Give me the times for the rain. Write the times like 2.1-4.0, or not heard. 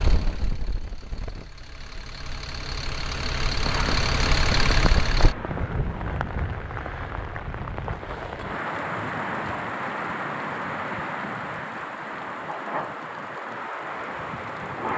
3.6-14.9.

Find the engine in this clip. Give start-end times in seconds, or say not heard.
0.0-5.3.